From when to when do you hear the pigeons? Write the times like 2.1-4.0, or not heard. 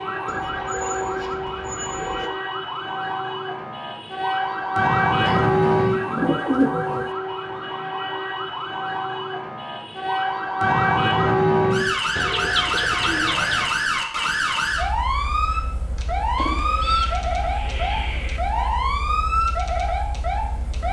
0.2-2.3, 5.2-7.1, 12.2-13.8, 16.4-18.4.